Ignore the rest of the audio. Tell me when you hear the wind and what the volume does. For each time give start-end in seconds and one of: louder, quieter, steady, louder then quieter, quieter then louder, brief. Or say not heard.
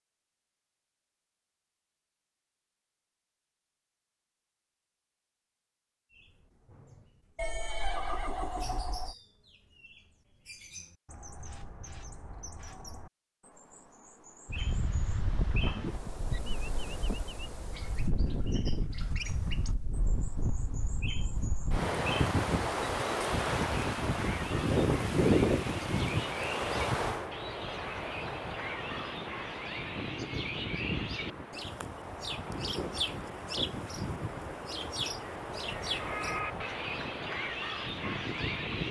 14.4-38.8 louder then quieter.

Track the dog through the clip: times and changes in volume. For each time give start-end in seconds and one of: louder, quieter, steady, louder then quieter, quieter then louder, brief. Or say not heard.
not heard.